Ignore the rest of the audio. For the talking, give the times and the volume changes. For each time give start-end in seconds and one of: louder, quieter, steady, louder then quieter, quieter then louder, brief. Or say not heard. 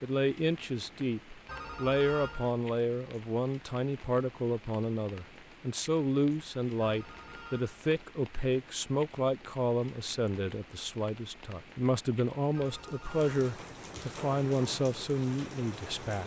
0.0-16.2 steady.